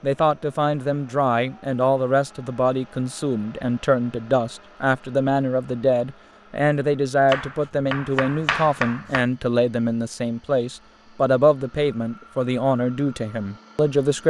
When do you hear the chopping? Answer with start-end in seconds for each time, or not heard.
7.3-9.2.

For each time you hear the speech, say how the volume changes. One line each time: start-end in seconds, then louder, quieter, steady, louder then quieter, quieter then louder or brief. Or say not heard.
0.0-14.2 steady.